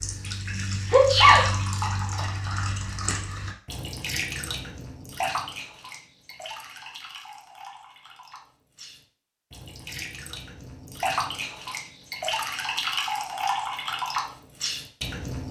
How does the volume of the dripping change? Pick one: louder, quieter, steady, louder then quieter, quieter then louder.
quieter then louder.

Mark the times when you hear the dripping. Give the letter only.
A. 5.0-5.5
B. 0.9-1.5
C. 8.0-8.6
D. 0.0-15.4
D.